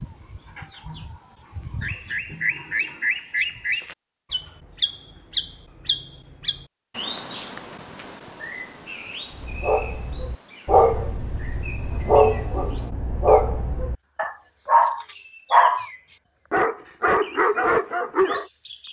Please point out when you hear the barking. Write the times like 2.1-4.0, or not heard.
9.3-18.4.